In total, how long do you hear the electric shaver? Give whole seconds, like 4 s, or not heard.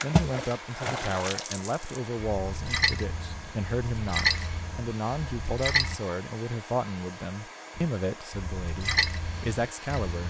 not heard.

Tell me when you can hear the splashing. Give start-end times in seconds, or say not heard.
0.0-6.0, 7.8-10.2.